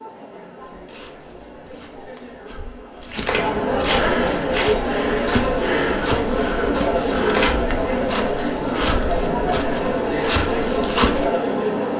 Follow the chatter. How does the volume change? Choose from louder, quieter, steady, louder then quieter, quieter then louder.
louder.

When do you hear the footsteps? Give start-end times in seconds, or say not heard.
0.6-11.3.